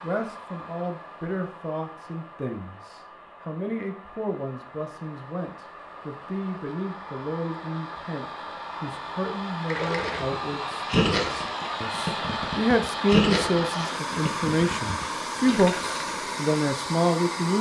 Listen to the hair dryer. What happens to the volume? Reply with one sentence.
The volume of the hair dryer goes up.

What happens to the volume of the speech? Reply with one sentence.
The volume of the speech goes up.